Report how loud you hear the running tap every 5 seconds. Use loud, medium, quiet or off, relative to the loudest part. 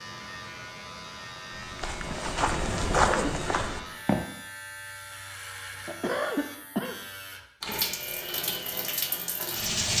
off, loud.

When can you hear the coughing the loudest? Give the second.
6 s.